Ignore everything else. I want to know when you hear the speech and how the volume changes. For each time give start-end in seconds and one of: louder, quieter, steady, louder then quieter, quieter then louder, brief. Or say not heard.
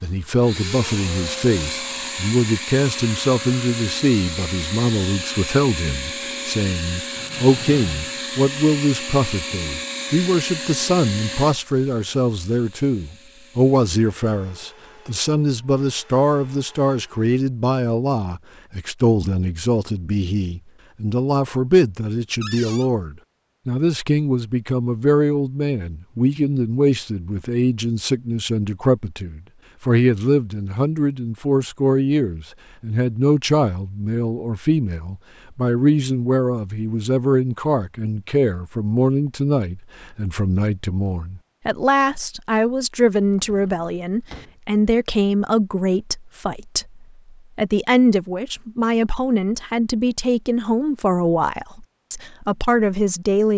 0.0-53.5 steady.